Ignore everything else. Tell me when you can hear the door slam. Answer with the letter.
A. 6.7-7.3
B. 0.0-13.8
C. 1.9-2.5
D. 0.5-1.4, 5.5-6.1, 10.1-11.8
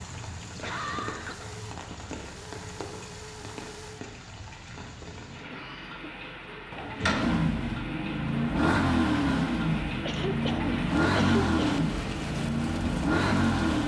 A.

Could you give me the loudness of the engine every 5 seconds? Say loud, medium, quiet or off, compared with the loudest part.
quiet, loud, loud.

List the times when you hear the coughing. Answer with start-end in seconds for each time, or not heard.
0.5-1.4, 5.5-6.1, 10.1-11.8.